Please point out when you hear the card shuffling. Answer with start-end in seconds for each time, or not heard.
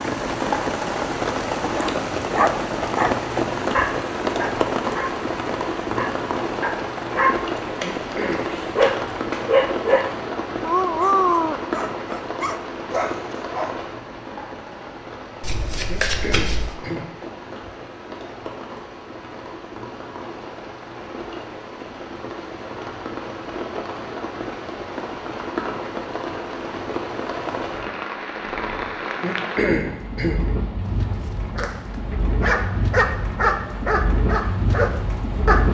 7.6-9.4, 15.4-16.8, 30.8-32.0.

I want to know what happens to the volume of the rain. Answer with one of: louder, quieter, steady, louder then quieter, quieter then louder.
quieter then louder.